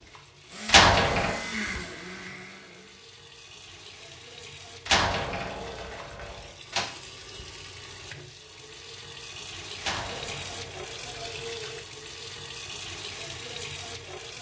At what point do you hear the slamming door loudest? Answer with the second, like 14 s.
1 s.